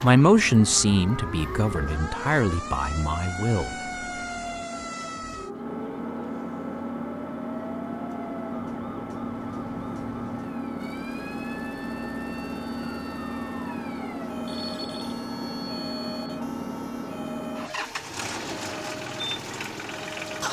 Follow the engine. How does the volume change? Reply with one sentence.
The loudness of the engine goes up.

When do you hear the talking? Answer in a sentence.
You can hear the talking from 0.0 to 3.8 s.